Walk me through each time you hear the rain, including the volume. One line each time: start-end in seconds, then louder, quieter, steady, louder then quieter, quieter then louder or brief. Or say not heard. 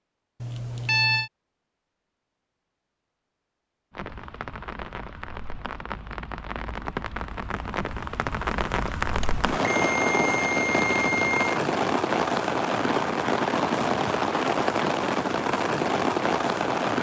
3.9-16.9 louder.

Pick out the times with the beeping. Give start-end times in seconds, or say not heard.
0.4-1.3, 9.2-11.6.